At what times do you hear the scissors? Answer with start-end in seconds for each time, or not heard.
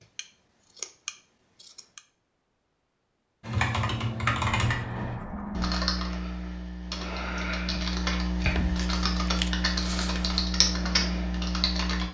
0.1-2.0, 4.5-5.8, 8.4-10.4.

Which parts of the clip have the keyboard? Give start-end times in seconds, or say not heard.
3.4-12.0.